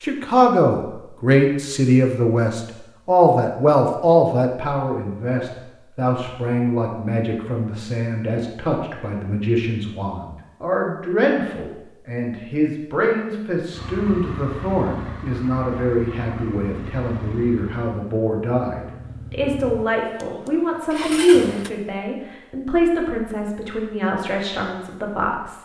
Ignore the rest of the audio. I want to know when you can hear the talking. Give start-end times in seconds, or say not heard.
0.0-25.6.